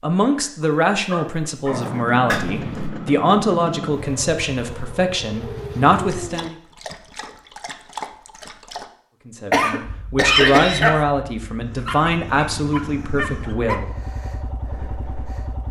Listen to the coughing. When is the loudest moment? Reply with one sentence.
The loudest moment of the coughing is at 10 seconds.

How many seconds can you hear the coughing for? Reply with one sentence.
The coughing can be heard for 2 seconds in total.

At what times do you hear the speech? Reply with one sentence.
You can hear the speech from 0.0 to 6.5 s and from 9.2 to 13.9 s.